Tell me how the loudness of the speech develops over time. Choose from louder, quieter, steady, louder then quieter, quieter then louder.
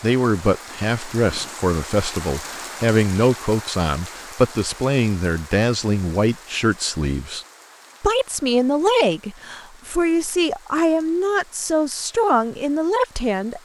steady.